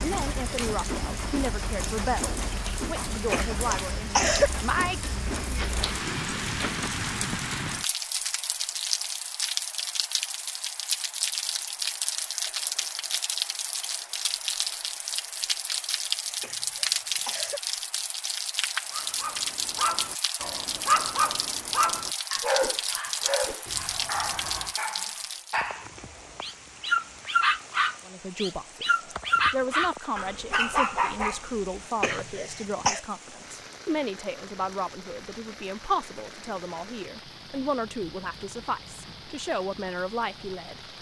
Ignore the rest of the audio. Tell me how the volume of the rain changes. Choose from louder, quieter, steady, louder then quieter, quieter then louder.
quieter.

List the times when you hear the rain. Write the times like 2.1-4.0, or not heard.
0.0-40.9.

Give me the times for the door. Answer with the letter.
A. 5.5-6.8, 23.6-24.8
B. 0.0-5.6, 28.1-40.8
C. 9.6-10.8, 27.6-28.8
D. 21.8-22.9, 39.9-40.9
A.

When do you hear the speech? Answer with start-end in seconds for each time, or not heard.
0.0-5.6, 28.1-40.8.